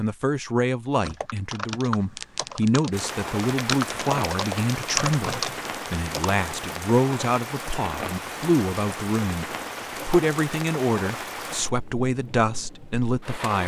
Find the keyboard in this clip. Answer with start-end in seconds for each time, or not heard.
1.1-6.3.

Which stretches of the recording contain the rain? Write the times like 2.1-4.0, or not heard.
2.9-13.6.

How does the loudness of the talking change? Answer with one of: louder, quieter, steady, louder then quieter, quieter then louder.
steady.